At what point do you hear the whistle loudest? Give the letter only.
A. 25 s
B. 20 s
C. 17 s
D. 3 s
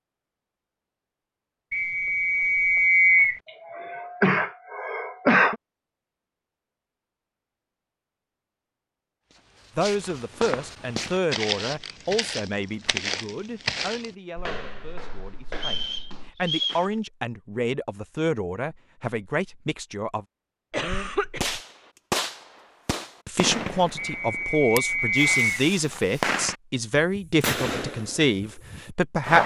D.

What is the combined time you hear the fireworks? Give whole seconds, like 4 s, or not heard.
8 s.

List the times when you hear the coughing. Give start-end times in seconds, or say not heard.
3.5-5.5, 20.7-21.6.